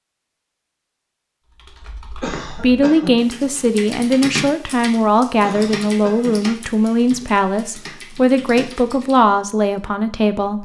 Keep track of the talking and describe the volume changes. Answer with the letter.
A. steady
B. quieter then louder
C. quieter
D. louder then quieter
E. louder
A.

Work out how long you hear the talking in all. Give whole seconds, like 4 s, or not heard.
8 s.